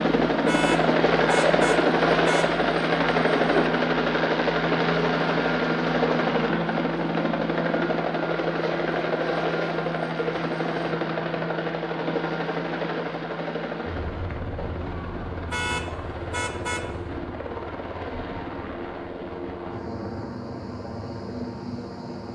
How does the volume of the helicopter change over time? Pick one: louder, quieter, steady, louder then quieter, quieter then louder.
quieter.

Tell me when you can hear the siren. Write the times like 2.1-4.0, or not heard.
not heard.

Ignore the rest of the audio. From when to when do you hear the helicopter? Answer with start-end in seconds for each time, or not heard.
0.0-22.2.